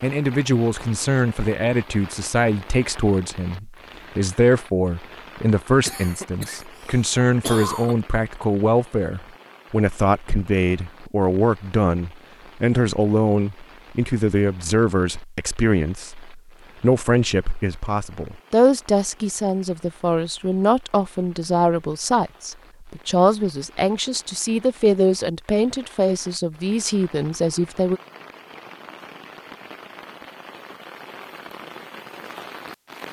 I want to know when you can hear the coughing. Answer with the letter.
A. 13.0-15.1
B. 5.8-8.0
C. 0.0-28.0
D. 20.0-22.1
B.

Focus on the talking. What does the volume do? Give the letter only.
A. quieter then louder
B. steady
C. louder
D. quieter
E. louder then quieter
B.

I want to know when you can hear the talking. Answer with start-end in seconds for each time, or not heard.
0.0-28.0.